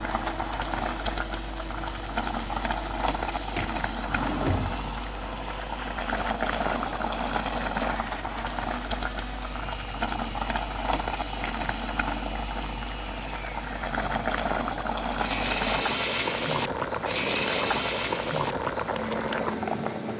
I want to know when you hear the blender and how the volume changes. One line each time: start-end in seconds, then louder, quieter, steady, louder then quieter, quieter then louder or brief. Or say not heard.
0.0-20.1 louder.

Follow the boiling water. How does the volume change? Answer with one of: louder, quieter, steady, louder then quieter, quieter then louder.
steady.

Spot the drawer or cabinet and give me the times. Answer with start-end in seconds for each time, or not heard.
3.5-4.9.